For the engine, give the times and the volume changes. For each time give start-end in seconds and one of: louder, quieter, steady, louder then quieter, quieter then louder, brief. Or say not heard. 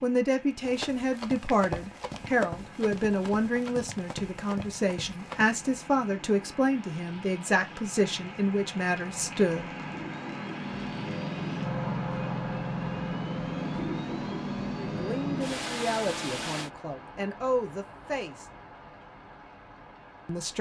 2.1-16.7 louder.